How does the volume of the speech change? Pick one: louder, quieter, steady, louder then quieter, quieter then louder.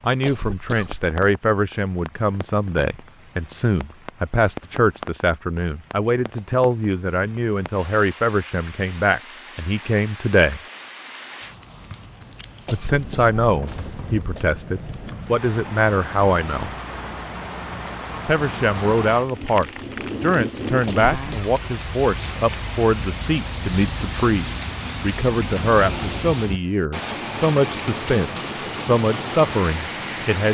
steady.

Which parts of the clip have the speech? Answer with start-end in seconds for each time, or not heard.
0.0-10.6, 12.7-16.7, 18.2-30.5.